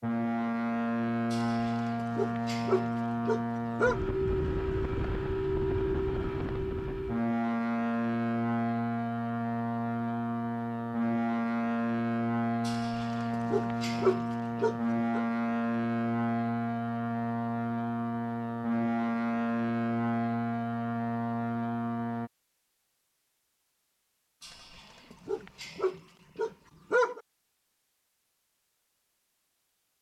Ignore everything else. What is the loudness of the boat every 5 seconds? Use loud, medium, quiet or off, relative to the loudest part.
loud, loud, loud, loud, loud, off.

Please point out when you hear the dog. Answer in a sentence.
The dog can be heard from 1.3 to 4.0 s, from 12.7 to 15.2 s and from 24.4 to 27.2 s.